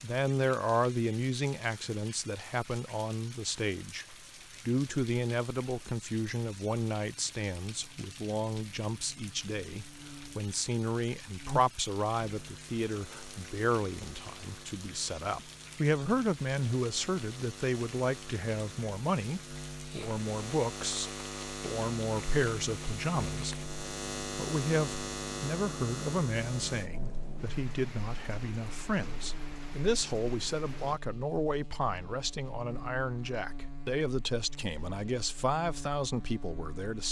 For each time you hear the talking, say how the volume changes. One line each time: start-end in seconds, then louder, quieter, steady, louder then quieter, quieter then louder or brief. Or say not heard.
0.0-37.0 steady.